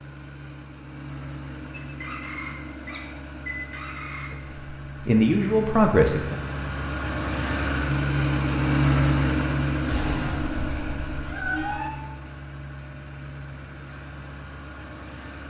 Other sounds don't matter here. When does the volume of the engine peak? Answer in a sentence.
The loudest moment of the engine is at 9 seconds.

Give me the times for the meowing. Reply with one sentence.
The meowing can be heard from 9.8 to 11.9 s.